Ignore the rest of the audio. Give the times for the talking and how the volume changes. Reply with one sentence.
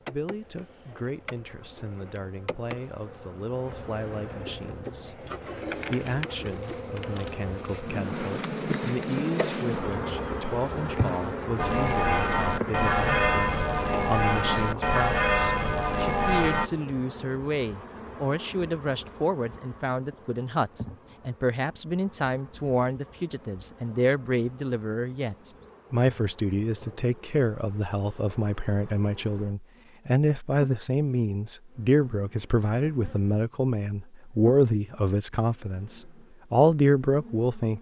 You can hear the talking from 0.1 to 37.7 s, getting louder.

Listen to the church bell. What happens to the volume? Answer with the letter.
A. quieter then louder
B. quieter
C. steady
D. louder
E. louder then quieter
C.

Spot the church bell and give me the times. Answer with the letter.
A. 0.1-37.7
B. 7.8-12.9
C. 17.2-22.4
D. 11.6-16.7
D.